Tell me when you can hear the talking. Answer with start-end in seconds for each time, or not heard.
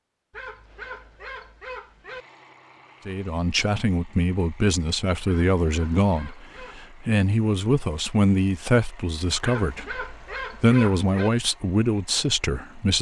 3.0-12.9.